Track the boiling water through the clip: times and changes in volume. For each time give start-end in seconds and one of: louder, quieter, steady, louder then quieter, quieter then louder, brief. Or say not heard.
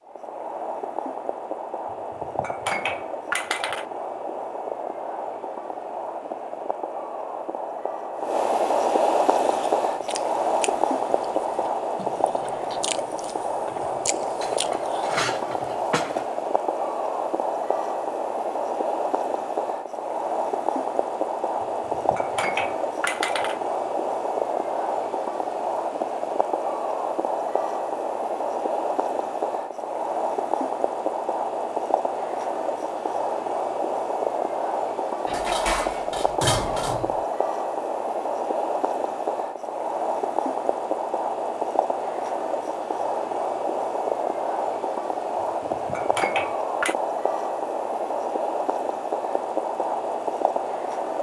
0.0-51.1 steady.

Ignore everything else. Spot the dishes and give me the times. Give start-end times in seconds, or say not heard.
1.9-3.9, 14.4-16.4, 21.6-23.6, 35.2-37.2, 45.4-47.0.